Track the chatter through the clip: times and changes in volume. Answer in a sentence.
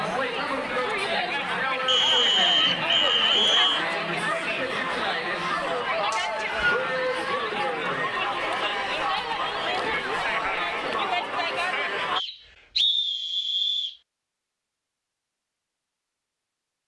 The chatter can be heard from 0.0 to 12.2 s, at a steady volume.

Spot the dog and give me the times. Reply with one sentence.
You can't hear the dog here.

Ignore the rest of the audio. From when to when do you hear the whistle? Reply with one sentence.
You can hear the whistle from 1.9 to 3.9 s, from 6.1 to 6.8 s and from 12.2 to 13.9 s.